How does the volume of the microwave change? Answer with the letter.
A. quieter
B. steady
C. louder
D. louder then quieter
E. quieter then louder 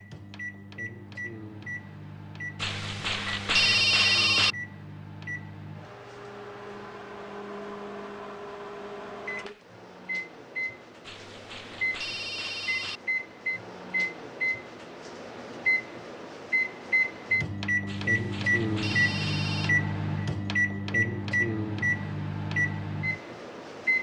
C.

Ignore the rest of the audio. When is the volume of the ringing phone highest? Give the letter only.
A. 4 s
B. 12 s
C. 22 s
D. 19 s
A.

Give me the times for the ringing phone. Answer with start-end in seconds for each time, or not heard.
2.6-4.5, 11.1-13.0, 17.9-19.8.